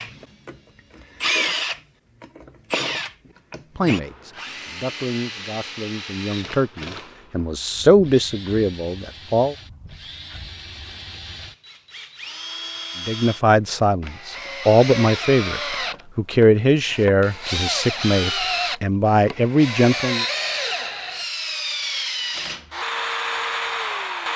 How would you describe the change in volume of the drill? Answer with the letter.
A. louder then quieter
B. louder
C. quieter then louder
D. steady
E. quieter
C.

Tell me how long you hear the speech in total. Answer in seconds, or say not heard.
13 s.